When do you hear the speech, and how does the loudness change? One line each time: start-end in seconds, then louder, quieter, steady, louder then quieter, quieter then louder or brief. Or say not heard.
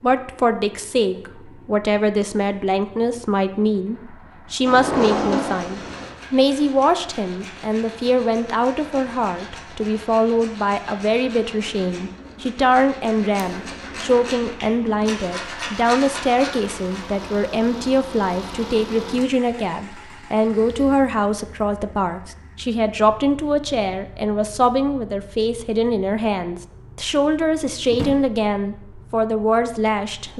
0.0-30.3 steady.